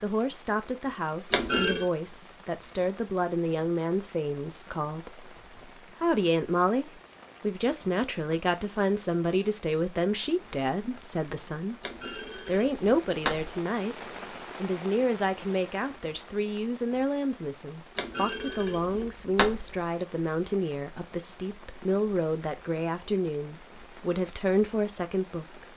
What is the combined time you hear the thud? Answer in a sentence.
You can hear the thud for 4 seconds altogether.